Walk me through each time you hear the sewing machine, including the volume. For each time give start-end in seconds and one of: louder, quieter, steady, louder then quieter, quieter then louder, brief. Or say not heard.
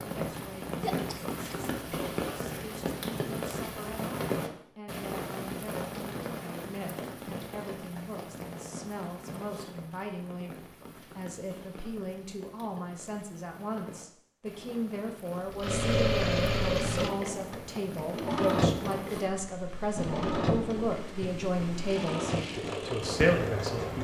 15.5-23.9 quieter.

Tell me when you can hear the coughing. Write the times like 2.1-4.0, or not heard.
0.8-1.6.